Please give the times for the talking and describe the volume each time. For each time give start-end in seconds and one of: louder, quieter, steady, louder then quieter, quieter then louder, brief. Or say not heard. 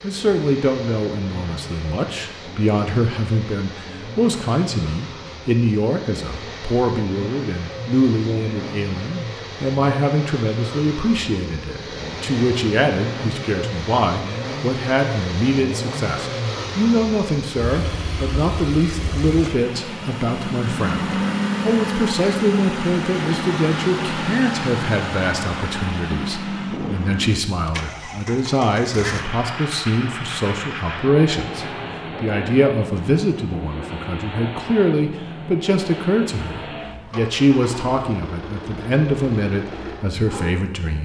0.0-40.9 steady.